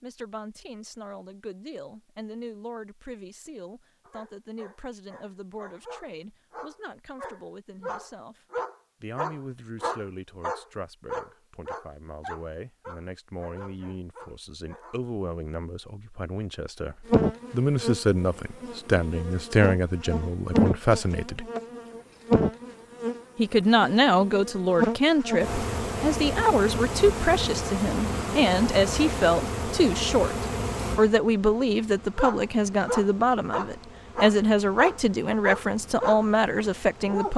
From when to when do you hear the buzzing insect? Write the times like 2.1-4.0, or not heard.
17.1-37.3.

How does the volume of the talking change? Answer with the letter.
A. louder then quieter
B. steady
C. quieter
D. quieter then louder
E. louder
E.